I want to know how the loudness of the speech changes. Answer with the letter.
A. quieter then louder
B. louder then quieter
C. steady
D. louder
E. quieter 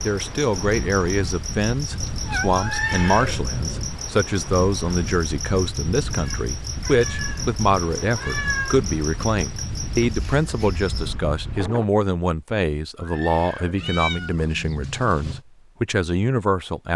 C.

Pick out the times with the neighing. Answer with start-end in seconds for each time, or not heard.
2.5-4.0, 12.9-13.9.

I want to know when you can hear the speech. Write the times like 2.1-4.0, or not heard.
0.0-16.9.